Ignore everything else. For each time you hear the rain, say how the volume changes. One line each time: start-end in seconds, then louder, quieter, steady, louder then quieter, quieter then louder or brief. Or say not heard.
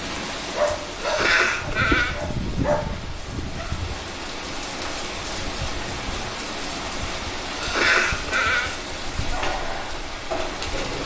0.0-11.0 steady.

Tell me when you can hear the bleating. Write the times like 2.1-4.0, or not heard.
0.8-2.1, 7.2-8.8.